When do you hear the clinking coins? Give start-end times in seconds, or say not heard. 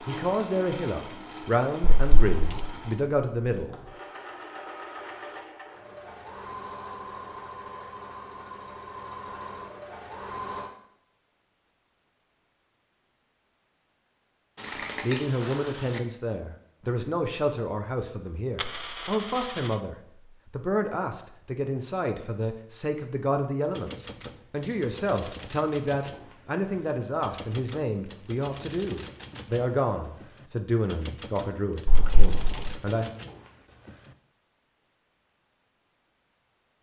1.8-2.6, 18.6-19.7, 31.9-32.8.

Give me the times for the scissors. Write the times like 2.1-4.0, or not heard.
14.6-16.0.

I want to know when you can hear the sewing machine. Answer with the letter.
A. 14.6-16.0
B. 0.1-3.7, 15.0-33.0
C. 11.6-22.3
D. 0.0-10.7
D.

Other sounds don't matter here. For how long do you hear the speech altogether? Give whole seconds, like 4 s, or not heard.
22 s.